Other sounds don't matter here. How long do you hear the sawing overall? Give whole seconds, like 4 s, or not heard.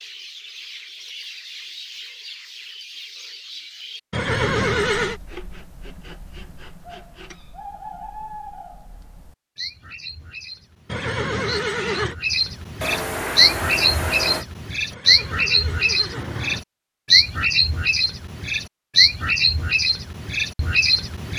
4 s.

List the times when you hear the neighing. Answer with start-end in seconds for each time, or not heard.
4.1-5.2, 10.8-12.2, 14.9-16.6.